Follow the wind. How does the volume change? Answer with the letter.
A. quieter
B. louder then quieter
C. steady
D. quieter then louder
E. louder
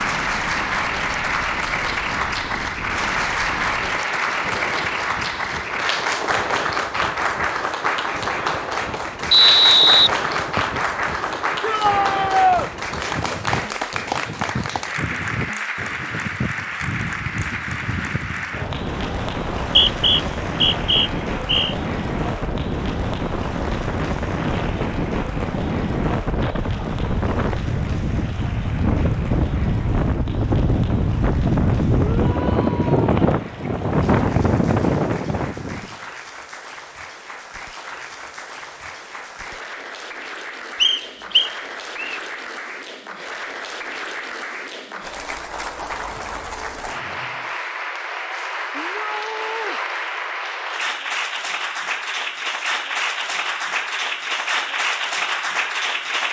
E.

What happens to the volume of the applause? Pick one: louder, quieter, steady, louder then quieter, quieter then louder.
quieter then louder.